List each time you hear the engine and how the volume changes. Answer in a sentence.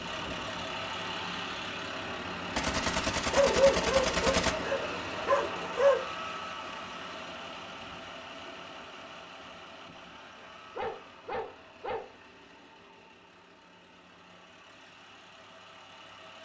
You can hear the engine from 0.0 to 16.4 s, getting quieter.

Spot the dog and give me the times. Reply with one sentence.
The dog can be heard from 3.3 to 6.0 s and from 10.3 to 12.1 s.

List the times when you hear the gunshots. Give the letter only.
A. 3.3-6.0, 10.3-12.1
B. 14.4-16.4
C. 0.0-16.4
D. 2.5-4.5
D.